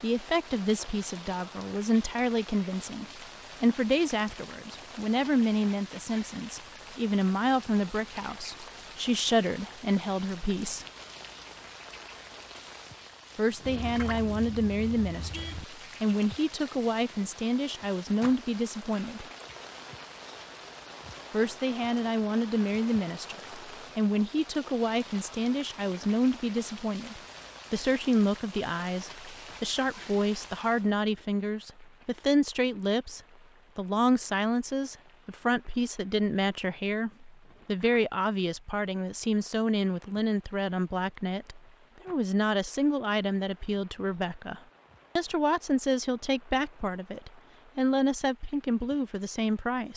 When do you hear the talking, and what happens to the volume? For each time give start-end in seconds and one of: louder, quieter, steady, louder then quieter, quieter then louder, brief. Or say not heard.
0.0-10.8 steady
13.3-19.2 steady
21.3-49.9 steady.